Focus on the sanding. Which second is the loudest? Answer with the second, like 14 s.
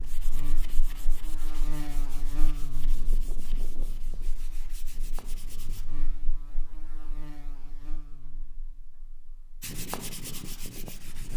10 s.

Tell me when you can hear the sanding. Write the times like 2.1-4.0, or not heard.
0.0-5.8, 9.6-11.3.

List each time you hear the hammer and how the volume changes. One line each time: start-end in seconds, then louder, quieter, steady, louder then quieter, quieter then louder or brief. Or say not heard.
not heard.